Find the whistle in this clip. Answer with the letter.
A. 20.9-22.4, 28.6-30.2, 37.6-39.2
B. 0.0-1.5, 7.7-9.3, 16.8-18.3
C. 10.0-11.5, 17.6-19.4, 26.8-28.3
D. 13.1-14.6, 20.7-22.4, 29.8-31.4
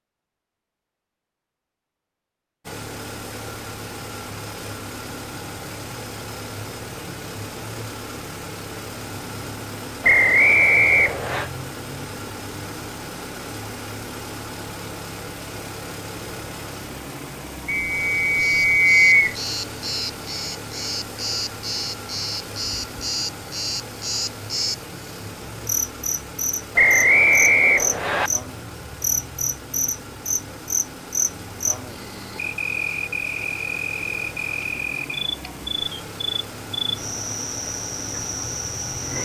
C.